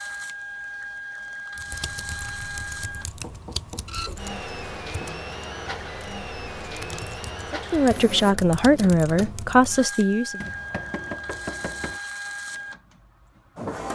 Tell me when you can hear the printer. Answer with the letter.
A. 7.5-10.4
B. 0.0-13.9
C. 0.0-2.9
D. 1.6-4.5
B.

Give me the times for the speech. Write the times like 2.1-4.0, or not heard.
7.5-10.4.